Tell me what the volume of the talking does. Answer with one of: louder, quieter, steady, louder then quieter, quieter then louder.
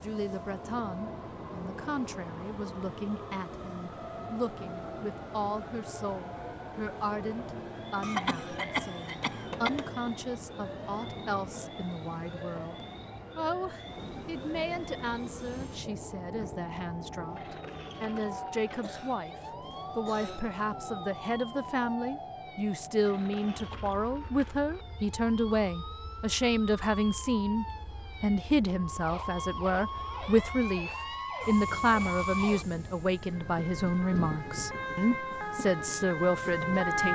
louder.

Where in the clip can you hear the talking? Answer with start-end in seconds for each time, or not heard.
0.0-37.1.